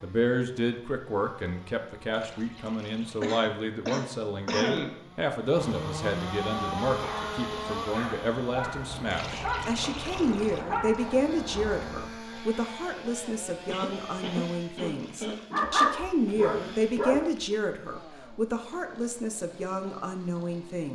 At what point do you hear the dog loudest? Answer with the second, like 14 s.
16 s.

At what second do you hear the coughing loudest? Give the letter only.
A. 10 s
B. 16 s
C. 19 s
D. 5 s
D.